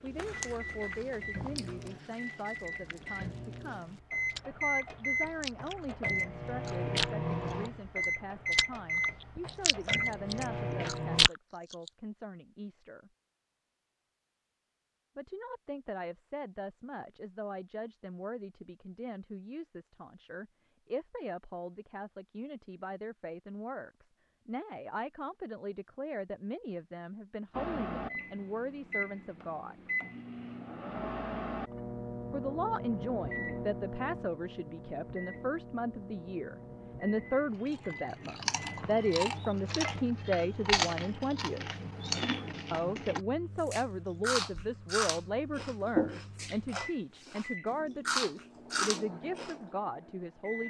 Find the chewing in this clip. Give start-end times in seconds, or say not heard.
0.1-11.9, 37.7-47.5, 48.0-49.5.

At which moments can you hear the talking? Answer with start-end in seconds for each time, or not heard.
0.0-13.1, 15.2-29.8, 32.3-41.6, 42.7-50.6.